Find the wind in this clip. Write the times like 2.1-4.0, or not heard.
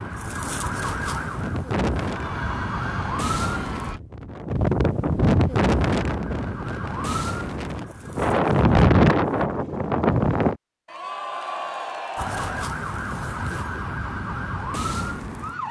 0.0-10.6.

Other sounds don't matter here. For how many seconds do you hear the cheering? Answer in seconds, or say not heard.
4 s.